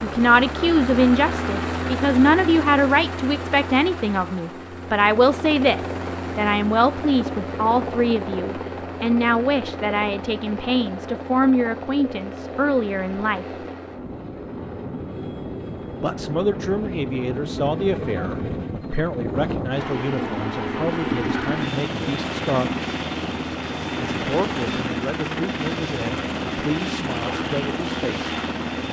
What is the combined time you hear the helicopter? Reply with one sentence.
The helicopter can be heard for 29 seconds in total.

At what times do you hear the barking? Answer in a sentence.
The barking can't be heard in this clip.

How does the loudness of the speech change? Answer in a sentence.
The volume of the speech goes down.